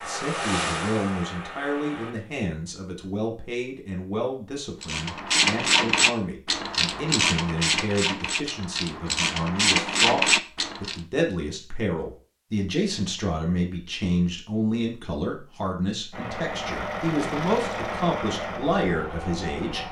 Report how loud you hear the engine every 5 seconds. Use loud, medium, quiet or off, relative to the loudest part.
loud, off, off, loud.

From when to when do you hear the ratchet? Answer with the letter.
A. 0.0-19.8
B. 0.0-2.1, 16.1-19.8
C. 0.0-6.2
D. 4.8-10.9
D.